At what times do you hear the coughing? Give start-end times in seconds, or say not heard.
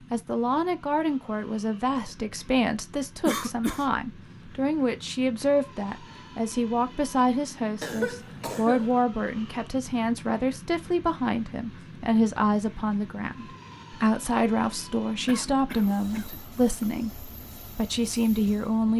3.2-3.9, 7.8-8.9, 15.2-16.9.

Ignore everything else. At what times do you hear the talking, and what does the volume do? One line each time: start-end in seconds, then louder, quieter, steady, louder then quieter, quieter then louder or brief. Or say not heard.
0.1-18.9 steady.